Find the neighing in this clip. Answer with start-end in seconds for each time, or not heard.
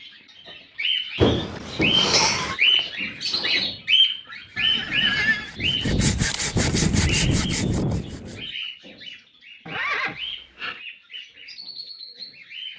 1.1-2.5, 4.5-5.5, 9.7-10.8.